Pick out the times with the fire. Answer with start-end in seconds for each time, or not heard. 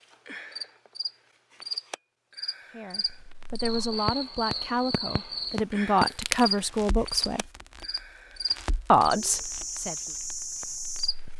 3.0-11.3.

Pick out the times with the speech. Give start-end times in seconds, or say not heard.
2.8-7.5, 8.9-9.9.